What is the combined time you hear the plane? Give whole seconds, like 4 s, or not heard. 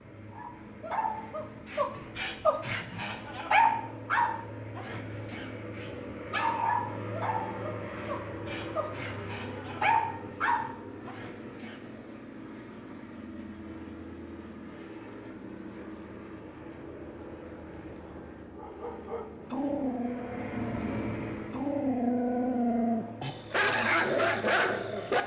25 s.